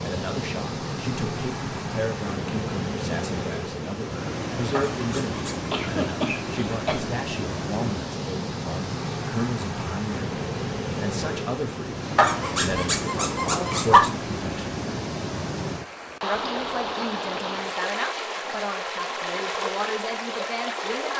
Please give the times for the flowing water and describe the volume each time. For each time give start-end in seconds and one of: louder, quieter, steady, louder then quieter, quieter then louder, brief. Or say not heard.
0.0-21.1 steady.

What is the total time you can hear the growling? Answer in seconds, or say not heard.
3 s.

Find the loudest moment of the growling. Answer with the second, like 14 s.
14 s.